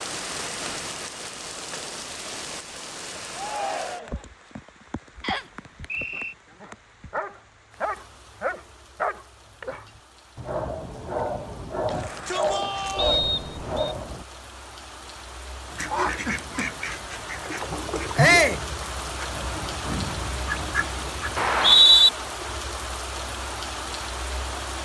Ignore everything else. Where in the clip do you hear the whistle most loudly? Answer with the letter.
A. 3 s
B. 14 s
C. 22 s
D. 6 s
C.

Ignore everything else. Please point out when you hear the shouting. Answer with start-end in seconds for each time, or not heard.
3.3-4.2, 11.9-13.2, 18.1-18.6.